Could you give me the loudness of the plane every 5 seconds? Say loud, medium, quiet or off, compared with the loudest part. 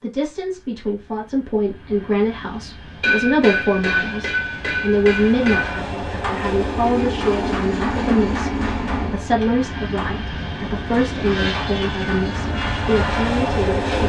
quiet, loud, loud.